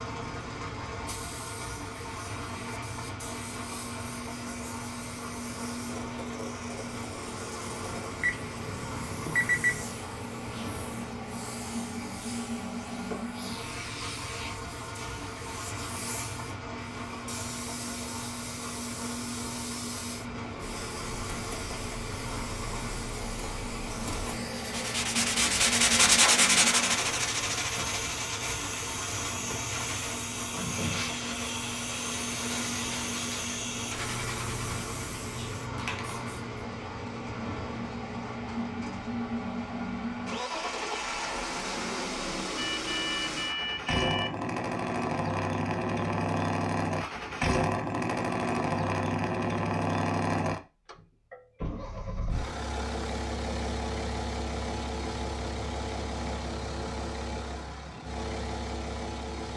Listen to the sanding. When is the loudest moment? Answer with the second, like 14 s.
26 s.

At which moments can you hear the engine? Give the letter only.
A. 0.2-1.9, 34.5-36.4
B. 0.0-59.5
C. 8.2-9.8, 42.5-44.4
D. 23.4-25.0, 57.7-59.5
B.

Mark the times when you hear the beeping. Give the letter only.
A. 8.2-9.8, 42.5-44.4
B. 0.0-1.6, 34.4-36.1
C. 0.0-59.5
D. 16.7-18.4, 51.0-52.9
A.